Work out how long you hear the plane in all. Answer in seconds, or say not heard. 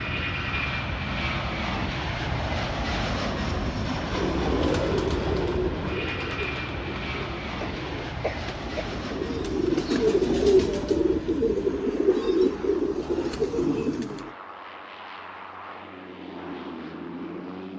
18 s.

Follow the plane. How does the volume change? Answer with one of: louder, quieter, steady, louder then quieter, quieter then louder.
quieter.